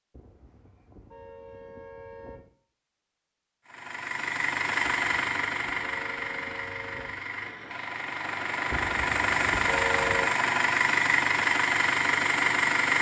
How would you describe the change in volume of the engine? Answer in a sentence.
The loudness of the engine goes down, then up.